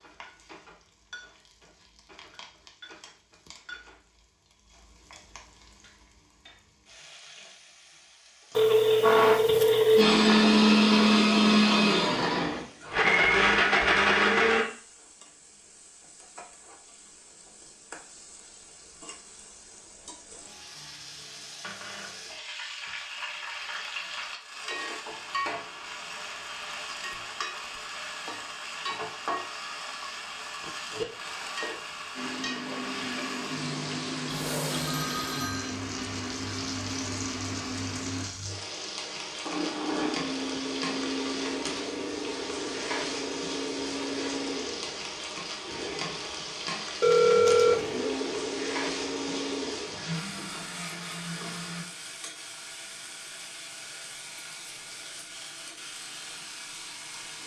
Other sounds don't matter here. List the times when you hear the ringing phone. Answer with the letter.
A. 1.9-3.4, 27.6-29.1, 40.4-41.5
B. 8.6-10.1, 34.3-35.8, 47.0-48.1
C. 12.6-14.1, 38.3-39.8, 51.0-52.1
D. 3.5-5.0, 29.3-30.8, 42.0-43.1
B.